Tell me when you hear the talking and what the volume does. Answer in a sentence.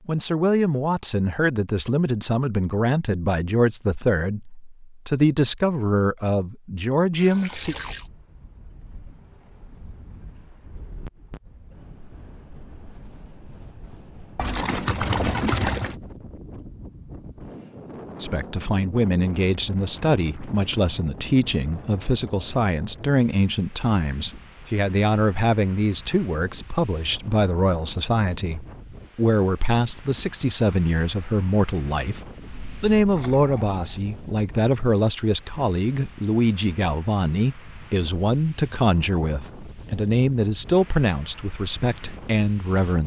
You can hear the talking from 0.1 to 7.8 s, at a steady volume; and from 18.2 to 43.0 s, at a steady volume.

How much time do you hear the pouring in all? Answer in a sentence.
The pouring can be heard for 4 seconds in total.